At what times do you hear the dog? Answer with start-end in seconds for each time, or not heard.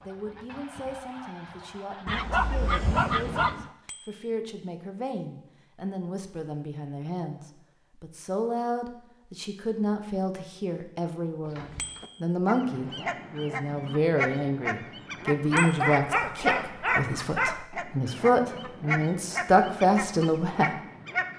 2.0-3.7, 15.5-17.6.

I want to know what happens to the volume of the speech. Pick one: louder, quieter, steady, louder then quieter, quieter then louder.
louder.